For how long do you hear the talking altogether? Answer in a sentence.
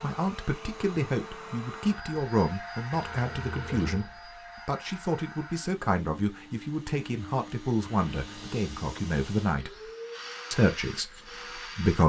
You can hear the talking for 11 seconds altogether.